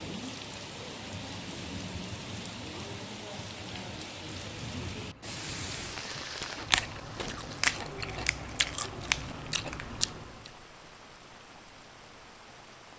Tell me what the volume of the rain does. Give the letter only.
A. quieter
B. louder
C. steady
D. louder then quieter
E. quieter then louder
A.